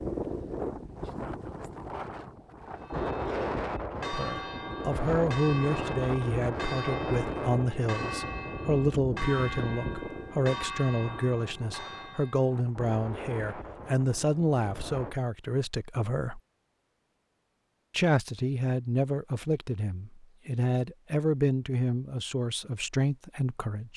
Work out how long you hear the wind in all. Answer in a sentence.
The wind can be heard for 15 seconds in total.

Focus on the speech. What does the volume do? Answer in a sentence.
The loudness of the speech stays about the same.